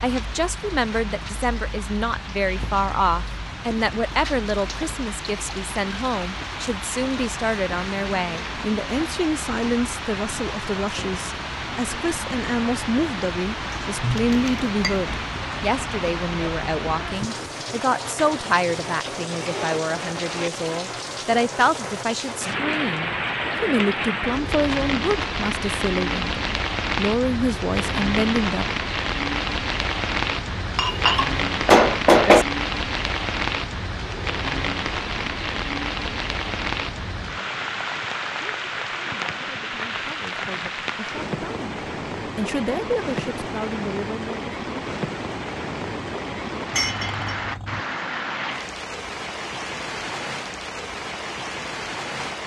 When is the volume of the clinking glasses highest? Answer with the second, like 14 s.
32 s.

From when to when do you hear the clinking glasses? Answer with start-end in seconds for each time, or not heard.
14.0-15.1, 30.8-32.5, 46.7-47.8.